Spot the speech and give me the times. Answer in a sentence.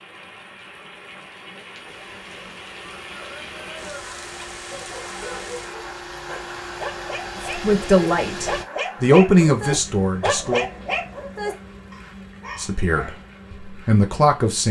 The speech can be heard from 7.5 to 10.7 s and from 12.6 to 14.6 s.